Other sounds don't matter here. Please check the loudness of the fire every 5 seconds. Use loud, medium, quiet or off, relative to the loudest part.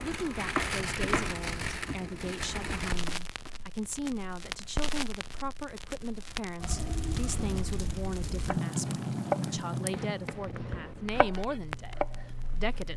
loud, loud, medium.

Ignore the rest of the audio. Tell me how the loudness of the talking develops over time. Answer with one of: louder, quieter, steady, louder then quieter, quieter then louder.
steady.